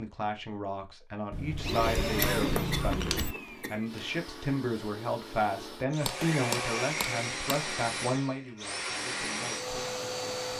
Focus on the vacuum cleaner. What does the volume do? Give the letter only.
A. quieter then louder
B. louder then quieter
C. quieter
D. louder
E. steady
A.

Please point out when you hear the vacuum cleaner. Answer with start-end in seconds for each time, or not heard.
1.6-10.5.